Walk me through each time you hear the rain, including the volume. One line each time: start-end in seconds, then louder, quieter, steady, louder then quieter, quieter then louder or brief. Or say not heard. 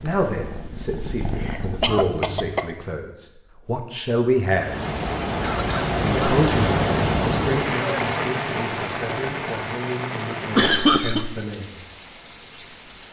4.5-13.0 quieter.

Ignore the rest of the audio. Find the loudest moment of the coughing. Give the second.
11 s.